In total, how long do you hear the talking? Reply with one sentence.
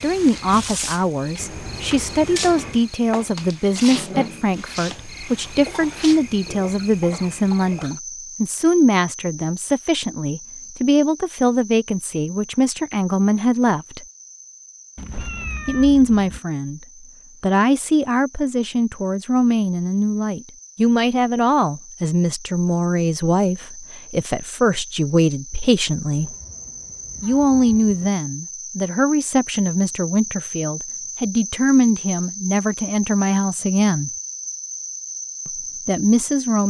The talking can be heard for 32 seconds in total.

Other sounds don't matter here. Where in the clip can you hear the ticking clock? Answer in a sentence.
The ticking clock can't be heard in this clip.